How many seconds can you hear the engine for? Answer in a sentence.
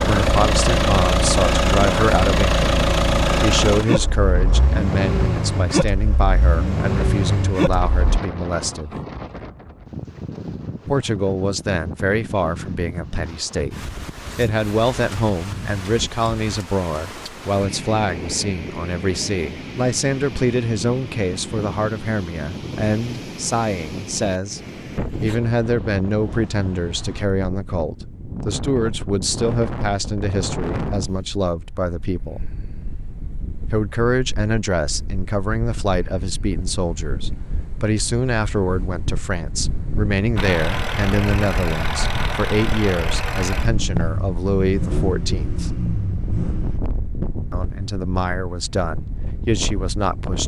You can hear the engine for 15 seconds altogether.